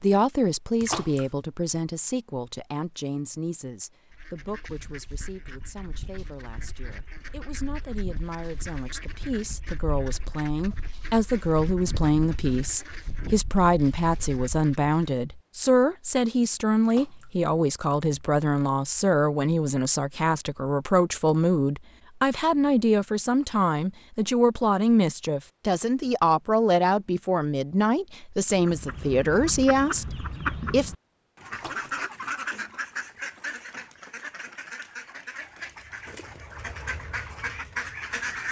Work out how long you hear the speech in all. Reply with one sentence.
You can hear the speech for 31 seconds altogether.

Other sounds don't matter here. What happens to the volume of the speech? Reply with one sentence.
The loudness of the speech goes up.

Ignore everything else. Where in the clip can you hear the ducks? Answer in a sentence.
The ducks can be heard from 4.1 to 15.2 s and from 28.5 to 38.4 s.